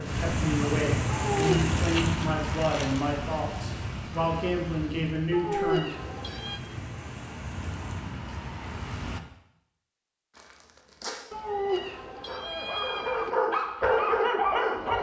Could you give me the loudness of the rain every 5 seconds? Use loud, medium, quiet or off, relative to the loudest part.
loud, medium, off.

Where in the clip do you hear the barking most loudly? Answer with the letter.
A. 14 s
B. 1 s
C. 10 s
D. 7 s
A.